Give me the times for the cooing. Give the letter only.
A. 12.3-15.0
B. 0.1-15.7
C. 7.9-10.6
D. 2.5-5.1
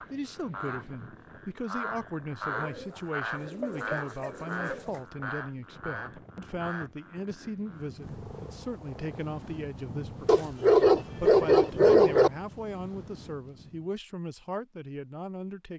D.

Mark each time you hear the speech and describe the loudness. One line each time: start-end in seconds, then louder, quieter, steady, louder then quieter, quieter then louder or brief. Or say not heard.
0.1-15.7 steady.